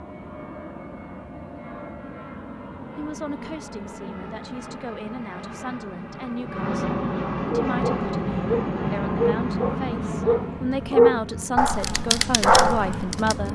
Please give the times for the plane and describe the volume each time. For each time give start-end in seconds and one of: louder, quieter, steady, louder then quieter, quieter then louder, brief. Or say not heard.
0.0-13.5 louder then quieter.